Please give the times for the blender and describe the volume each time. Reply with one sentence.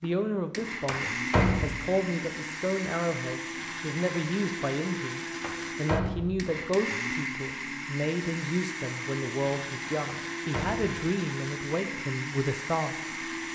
The blender can be heard from 0.0 to 13.4 s, at a steady volume.